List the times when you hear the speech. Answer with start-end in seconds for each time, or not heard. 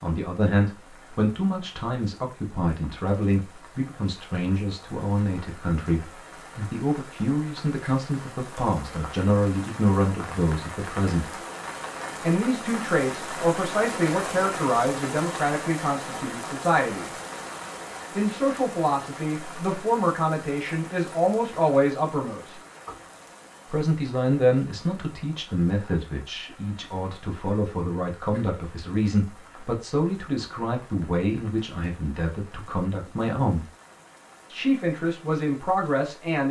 0.0-11.3, 12.2-17.1, 18.1-22.6, 23.7-33.6, 34.5-36.4.